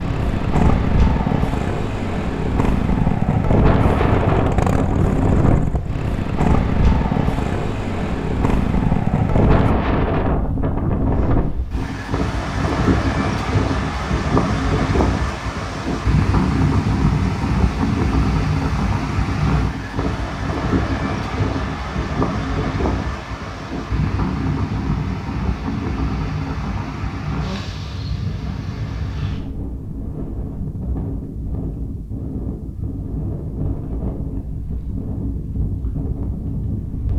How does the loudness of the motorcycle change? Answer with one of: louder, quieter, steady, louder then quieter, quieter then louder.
steady.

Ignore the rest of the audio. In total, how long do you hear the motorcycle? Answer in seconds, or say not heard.
10 s.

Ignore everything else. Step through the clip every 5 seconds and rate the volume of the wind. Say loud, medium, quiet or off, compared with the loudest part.
loud, loud, loud, loud, loud, medium, medium, medium.